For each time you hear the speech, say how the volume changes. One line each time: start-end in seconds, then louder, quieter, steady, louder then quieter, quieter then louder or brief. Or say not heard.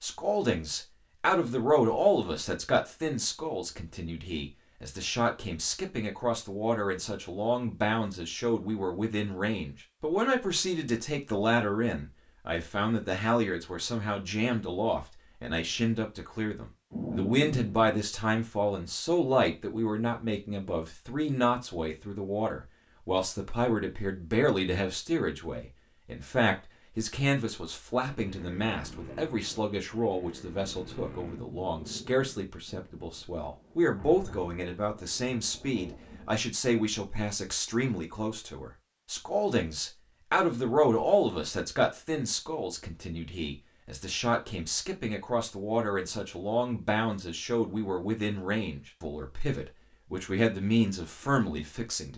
0.0-52.1 steady.